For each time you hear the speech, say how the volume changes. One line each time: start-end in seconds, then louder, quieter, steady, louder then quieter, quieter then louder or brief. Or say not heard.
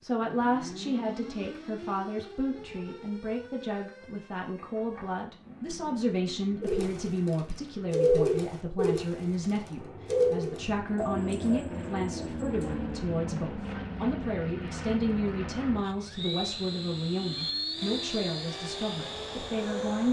0.0-20.0 steady.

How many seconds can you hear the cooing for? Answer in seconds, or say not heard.
6 s.